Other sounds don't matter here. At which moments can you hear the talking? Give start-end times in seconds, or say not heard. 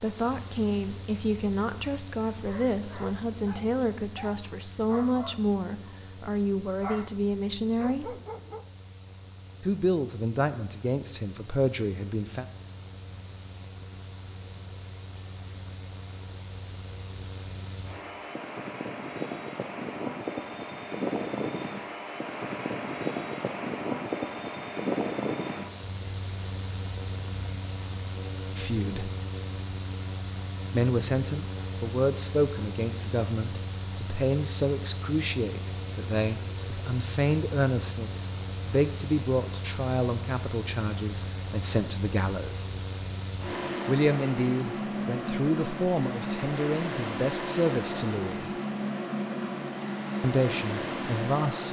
0.0-8.2, 9.6-12.4, 28.6-29.1, 30.7-42.6, 43.9-48.5, 50.2-51.6.